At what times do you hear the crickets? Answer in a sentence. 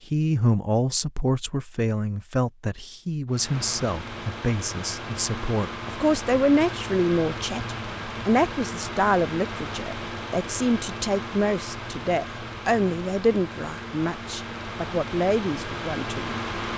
You can't hear the crickets here.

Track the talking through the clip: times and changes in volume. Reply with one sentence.
You can hear the talking from 0.1 to 16.4 s, at a steady volume.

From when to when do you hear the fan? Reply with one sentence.
You can hear the fan from 3.2 to 16.7 s.